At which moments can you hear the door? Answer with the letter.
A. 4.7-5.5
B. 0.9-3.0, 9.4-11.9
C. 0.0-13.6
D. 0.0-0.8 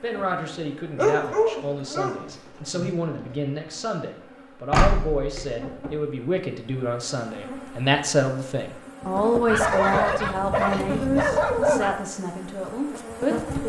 A.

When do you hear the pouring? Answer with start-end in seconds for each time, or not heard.
not heard.